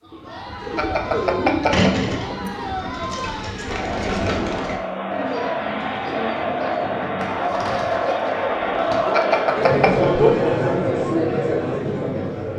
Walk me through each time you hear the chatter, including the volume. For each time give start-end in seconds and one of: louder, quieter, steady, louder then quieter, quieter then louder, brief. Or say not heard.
0.0-12.5 louder.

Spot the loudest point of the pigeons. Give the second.
2 s.